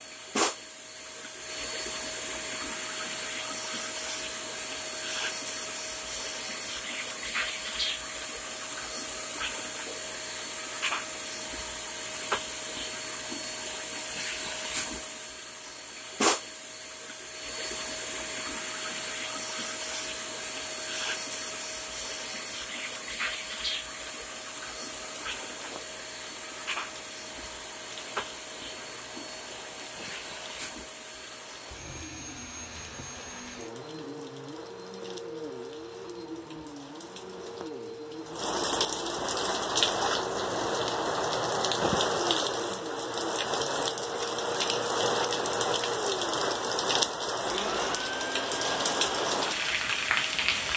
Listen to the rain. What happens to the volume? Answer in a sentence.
The volume of the rain goes up.